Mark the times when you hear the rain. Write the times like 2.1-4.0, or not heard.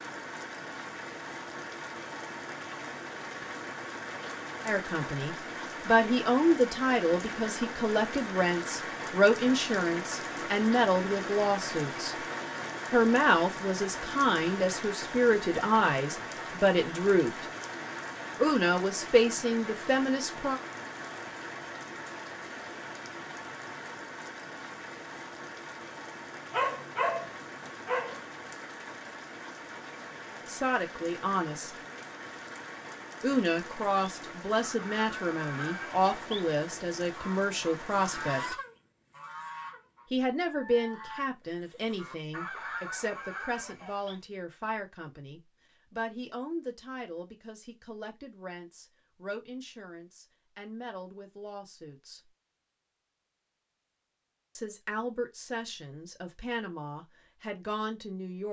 0.0-38.5.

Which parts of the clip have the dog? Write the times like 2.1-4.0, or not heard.
26.5-28.2.